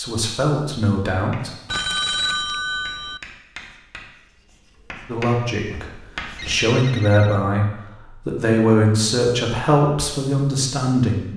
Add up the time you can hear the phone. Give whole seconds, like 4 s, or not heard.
3 s.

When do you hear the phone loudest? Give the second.
2 s.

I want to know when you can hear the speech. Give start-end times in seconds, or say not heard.
0.0-1.5, 5.0-11.3.